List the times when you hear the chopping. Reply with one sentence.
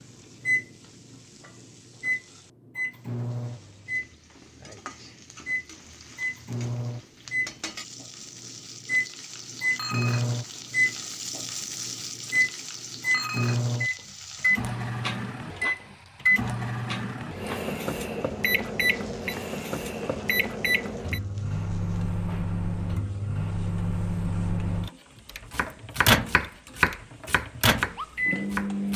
You can hear the chopping from 25.5 to 28.9 s.